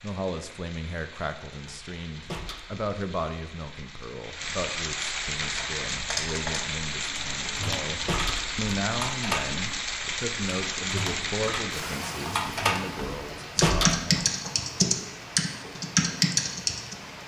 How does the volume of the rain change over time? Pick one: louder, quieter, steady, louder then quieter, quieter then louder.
louder then quieter.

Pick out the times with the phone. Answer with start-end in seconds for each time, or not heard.
not heard.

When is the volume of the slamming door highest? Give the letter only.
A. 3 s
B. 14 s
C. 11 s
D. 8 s
B.